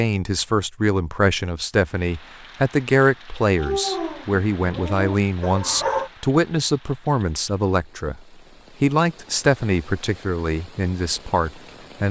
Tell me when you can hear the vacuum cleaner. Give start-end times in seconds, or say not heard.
not heard.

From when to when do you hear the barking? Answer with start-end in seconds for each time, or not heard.
3.5-6.1.